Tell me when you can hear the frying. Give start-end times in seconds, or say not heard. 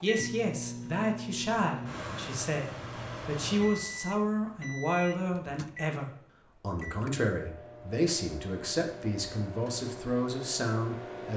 not heard.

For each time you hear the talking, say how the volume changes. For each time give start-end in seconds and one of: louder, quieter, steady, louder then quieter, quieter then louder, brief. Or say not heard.
0.0-11.3 steady.